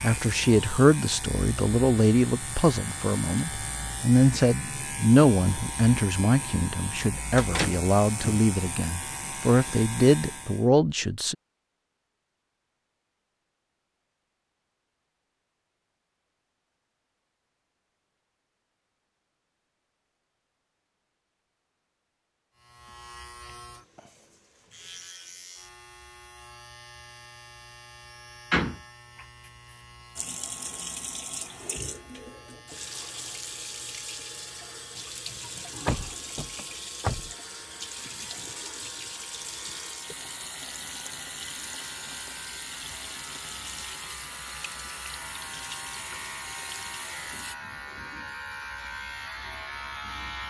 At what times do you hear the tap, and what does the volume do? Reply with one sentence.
You can hear the tap from 30.1 to 47.5 s, at a steady volume.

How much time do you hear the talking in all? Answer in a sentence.
The talking can be heard for 11 seconds in total.